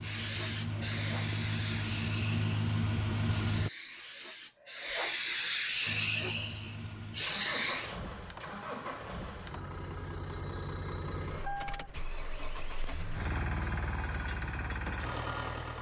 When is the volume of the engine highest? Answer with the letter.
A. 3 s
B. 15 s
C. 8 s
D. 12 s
A.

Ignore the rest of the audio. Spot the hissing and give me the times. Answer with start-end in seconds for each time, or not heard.
0.0-8.0.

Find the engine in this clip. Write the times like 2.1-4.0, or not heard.
0.0-3.7, 5.8-15.7.